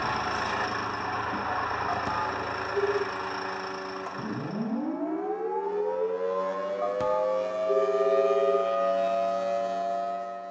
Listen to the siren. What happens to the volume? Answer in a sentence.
The volume of the siren goes up.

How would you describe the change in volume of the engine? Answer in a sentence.
The volume of the engine goes down.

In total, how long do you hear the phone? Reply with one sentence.
You can hear the phone for 3 seconds altogether.